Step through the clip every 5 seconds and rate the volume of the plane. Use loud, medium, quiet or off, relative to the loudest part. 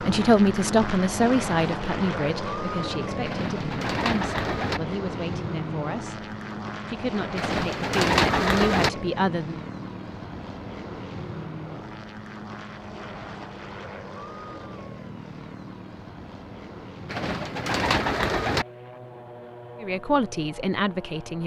loud, loud, medium, medium, quiet.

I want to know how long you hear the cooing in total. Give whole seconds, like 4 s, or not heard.
5 s.